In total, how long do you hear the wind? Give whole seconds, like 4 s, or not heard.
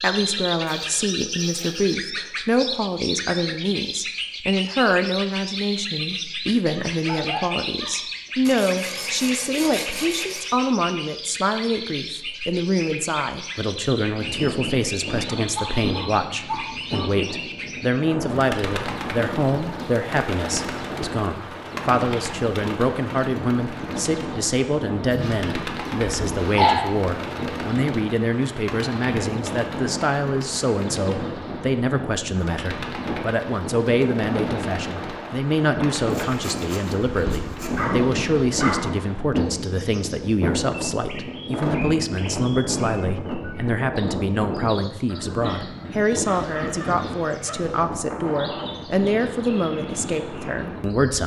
37 s.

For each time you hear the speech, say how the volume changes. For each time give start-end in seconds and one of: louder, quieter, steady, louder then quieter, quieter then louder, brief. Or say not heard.
0.0-51.2 steady.